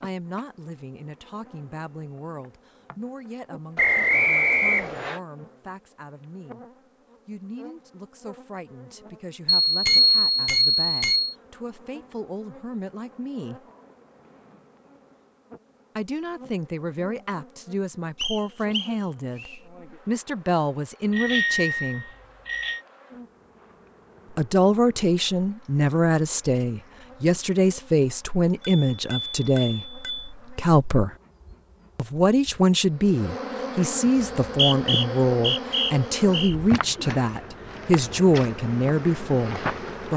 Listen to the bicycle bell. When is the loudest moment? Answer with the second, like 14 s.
10 s.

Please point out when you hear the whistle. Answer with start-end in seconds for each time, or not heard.
3.8-5.2, 18.1-19.6, 34.2-36.5.